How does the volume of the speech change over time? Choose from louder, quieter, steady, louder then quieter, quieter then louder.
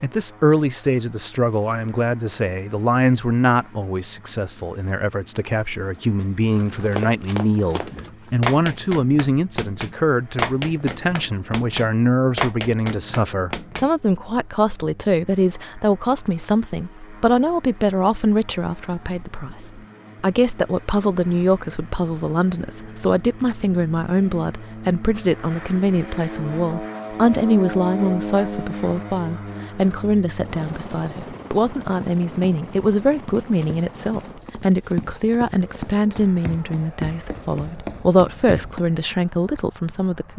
steady.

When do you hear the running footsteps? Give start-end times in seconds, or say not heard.
6.9-13.9, 31.9-38.8.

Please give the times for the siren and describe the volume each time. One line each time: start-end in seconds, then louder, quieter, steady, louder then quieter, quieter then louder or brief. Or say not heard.
not heard.